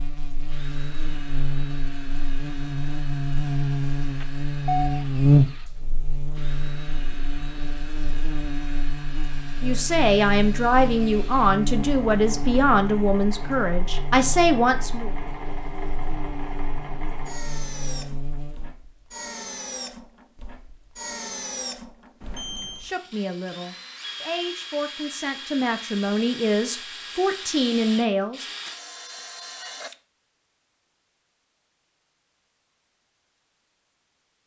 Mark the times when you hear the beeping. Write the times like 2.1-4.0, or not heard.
4.2-4.9, 22.2-22.9.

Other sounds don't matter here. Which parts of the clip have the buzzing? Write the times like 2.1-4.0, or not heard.
0.0-18.8.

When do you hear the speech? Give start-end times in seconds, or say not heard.
9.6-15.2, 22.8-28.4.